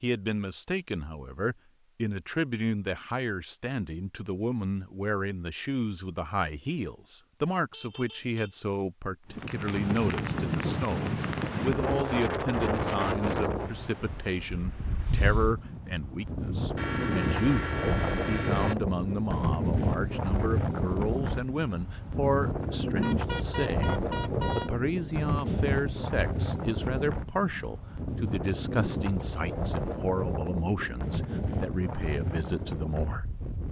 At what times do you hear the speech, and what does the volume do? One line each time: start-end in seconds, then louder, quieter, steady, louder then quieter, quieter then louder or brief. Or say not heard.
0.0-33.2 steady.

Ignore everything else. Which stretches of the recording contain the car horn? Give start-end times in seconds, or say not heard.
7.7-8.7, 16.8-18.8, 23.0-24.7.